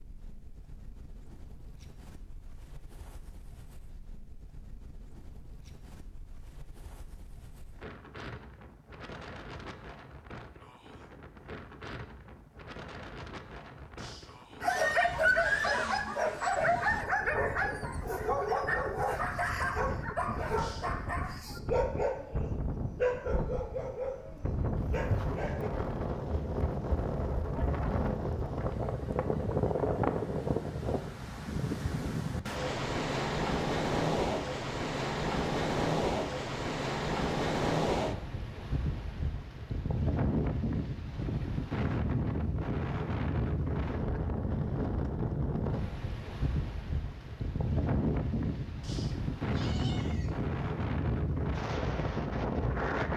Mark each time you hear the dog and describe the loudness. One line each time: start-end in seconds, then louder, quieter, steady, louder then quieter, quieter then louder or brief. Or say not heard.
14.6-25.7 quieter.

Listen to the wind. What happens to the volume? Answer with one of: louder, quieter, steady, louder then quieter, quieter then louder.
louder.